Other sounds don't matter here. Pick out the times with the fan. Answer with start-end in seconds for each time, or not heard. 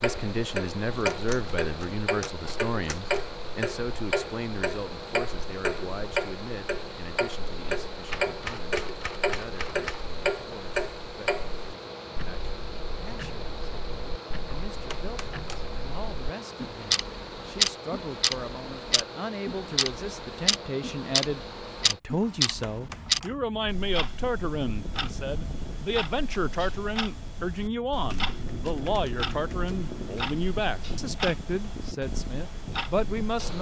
0.0-33.5.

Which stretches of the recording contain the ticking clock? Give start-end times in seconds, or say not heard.
0.0-33.5.